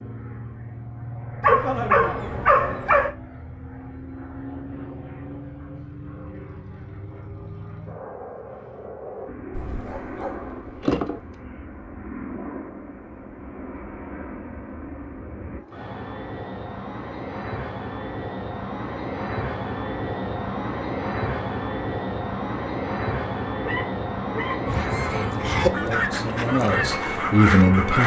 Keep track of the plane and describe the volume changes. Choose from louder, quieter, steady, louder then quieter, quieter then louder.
louder.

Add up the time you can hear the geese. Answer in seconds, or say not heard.
3 s.